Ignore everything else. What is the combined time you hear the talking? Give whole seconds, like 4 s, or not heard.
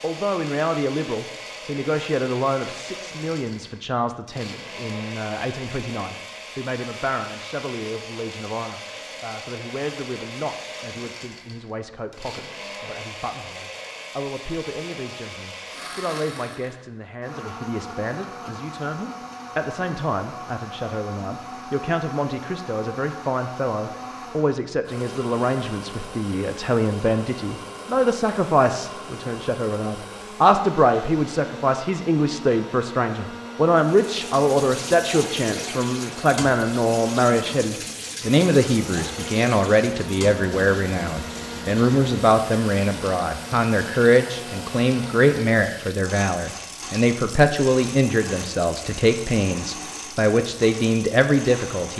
52 s.